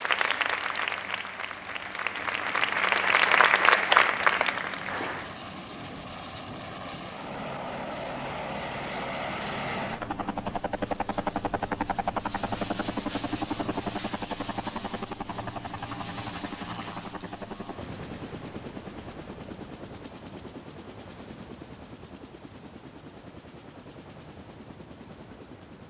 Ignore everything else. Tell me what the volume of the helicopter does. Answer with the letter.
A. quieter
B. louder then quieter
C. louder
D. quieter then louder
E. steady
B.